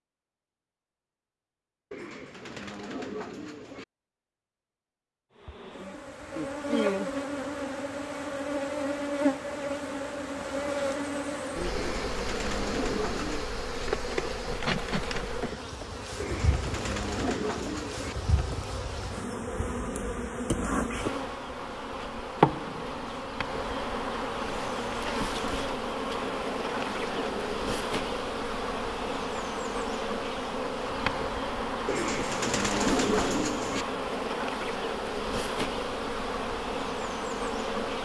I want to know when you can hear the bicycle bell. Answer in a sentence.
The bicycle bell can't be heard in this clip.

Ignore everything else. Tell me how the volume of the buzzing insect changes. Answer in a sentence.
The loudness of the buzzing insect stays about the same.